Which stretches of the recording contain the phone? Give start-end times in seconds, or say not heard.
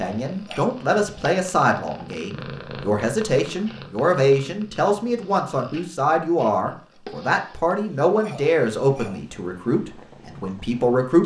not heard.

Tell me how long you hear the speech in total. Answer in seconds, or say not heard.
11 s.